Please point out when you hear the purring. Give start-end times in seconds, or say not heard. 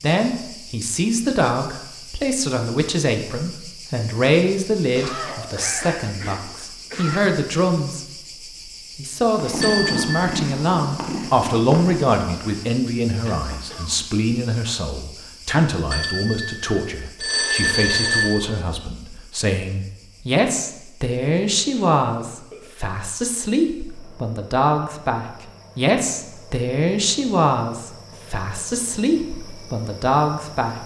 9.3-12.8.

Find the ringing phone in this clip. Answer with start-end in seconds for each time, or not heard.
9.6-10.3, 15.9-18.4.